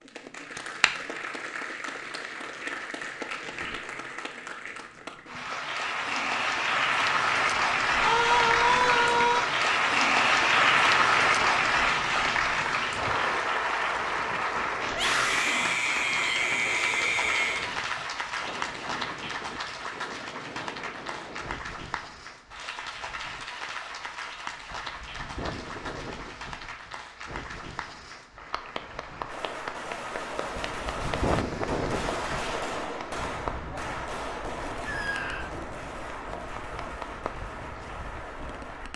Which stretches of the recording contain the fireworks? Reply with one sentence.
You can hear the fireworks from 29.2 to 38.9 s.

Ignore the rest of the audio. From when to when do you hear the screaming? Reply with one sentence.
You can hear the screaming from 8.0 to 9.4 s, from 14.9 to 17.6 s and from 34.9 to 35.5 s.